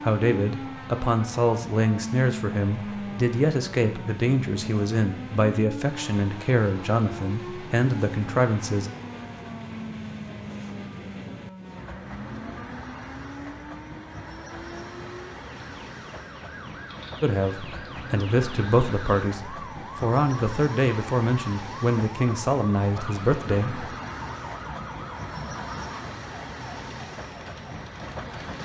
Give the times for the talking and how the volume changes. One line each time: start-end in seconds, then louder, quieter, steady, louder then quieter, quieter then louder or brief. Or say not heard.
0.0-8.9 steady
17.2-23.9 steady.